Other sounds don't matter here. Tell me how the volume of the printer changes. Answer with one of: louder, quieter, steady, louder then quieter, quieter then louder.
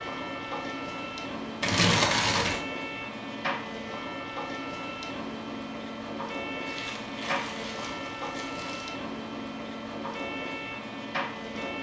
steady.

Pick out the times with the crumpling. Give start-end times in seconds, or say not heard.
1.6-2.6, 6.7-8.9.